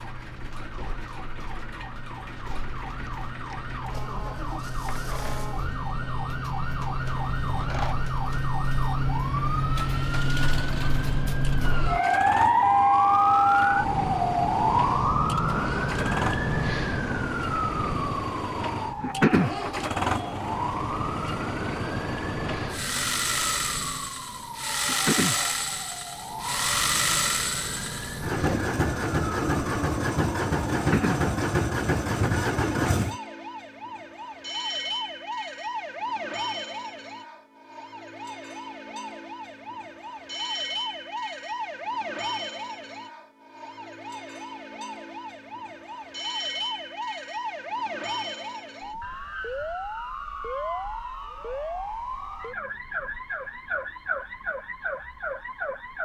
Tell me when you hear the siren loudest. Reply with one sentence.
The volume of the siren peaks at 13 seconds.